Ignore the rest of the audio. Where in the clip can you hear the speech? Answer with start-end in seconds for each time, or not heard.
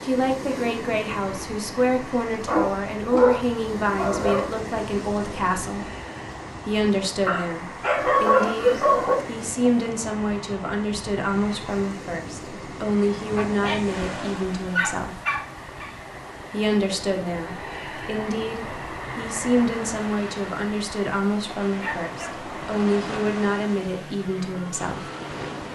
0.0-5.8, 6.7-15.2, 16.5-25.0.